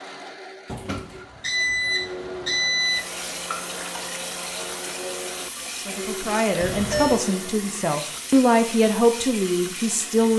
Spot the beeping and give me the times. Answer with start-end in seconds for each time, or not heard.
0.7-3.0, 6.6-7.2.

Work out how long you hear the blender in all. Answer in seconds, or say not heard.
8 s.